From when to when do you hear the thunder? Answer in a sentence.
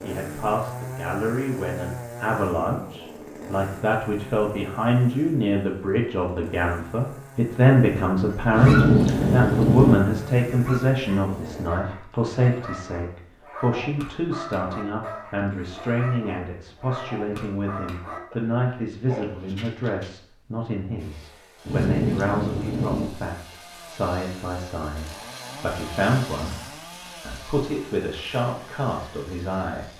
You can hear the thunder from 8.5 to 9.9 s and from 21.6 to 23.1 s.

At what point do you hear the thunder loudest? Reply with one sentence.
The volume of the thunder peaks at 9 seconds.